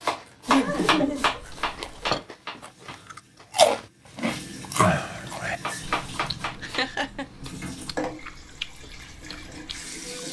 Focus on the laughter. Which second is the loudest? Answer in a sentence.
The loudest moment of the laughter is at 1 second.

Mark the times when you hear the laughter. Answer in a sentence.
You can hear the laughter from 0.5 to 2.2 s and from 6.6 to 7.2 s.